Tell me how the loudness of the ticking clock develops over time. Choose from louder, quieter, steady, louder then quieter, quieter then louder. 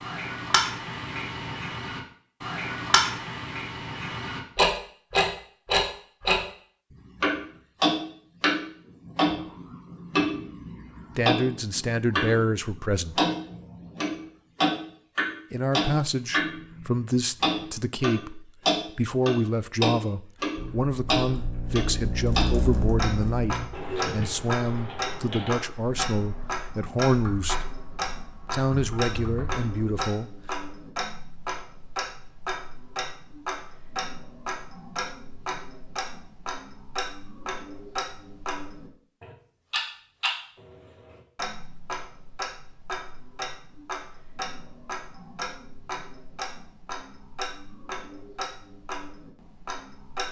quieter.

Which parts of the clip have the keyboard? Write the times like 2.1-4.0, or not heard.
20.6-30.0.